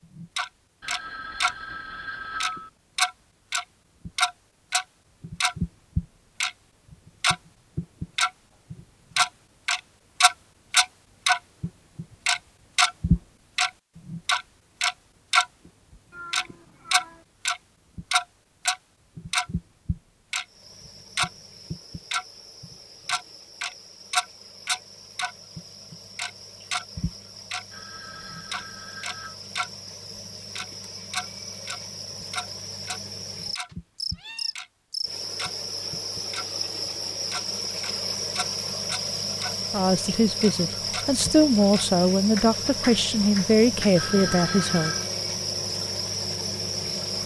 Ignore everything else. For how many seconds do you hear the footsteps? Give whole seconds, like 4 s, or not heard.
not heard.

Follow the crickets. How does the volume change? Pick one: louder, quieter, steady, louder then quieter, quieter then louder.
louder.